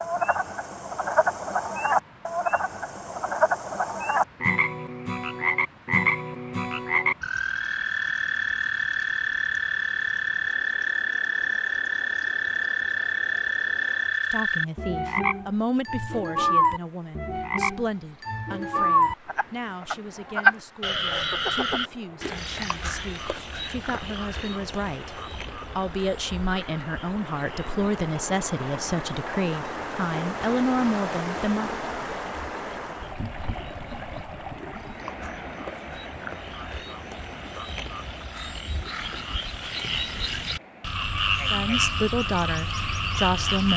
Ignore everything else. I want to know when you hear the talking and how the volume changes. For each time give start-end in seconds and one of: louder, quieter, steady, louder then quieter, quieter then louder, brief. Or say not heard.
14.3-31.8 quieter then louder
41.5-43.7 brief.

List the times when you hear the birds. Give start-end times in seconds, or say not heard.
not heard.